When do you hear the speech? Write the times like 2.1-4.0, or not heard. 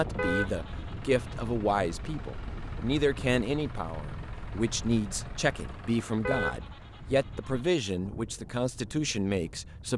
0.0-9.9.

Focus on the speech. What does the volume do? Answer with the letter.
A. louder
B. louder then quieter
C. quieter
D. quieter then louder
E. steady
E.